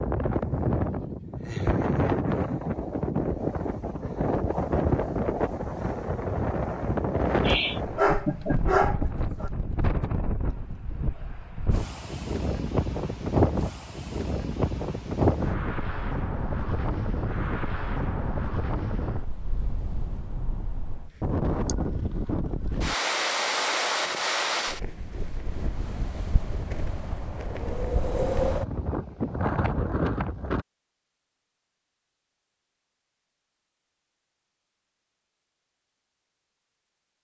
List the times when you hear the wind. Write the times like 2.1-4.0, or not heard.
0.0-30.6.